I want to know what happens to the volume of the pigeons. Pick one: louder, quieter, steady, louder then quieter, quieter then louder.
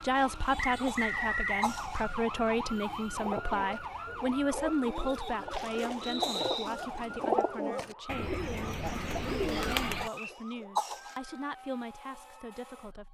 louder.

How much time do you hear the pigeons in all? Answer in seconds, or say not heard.
7 s.